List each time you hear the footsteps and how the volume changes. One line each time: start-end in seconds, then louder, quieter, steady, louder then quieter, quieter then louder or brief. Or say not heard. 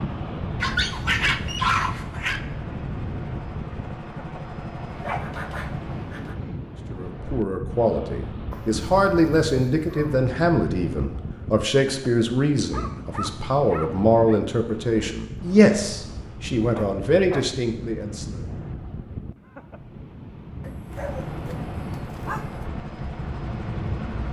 not heard.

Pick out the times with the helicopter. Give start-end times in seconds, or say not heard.
0.0-6.2, 20.8-24.2.